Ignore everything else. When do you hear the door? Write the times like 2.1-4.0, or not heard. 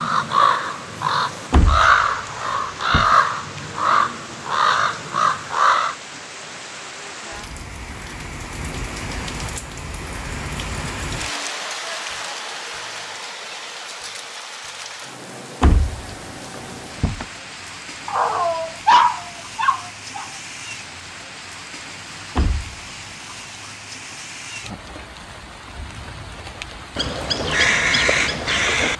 1.5-3.1, 15.6-17.2, 22.4-22.9.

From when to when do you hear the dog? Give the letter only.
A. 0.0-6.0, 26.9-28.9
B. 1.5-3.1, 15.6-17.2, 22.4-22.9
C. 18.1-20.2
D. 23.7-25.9
C.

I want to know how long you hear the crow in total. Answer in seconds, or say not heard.
8 s.